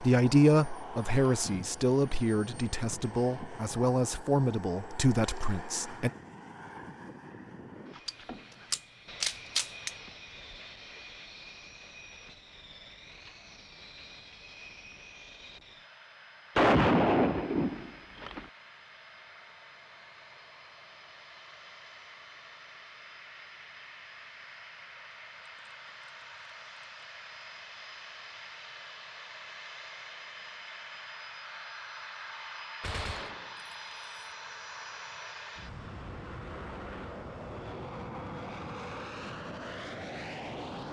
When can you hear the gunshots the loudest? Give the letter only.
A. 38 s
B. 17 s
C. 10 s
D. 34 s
B.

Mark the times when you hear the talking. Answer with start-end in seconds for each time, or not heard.
0.0-6.1.